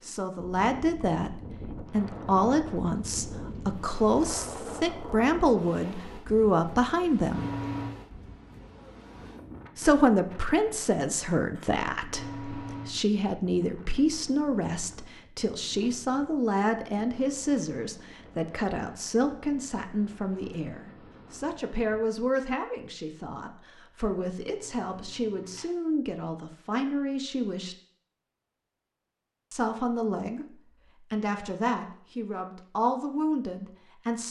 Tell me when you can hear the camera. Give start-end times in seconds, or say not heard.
7.3-8.0, 12.1-12.9, 24.6-25.7.